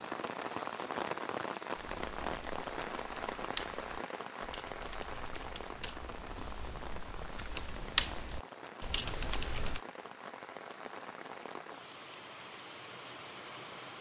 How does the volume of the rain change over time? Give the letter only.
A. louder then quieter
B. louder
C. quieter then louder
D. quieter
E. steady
D.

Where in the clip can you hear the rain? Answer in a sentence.
The rain can be heard from 0.0 to 13.9 s.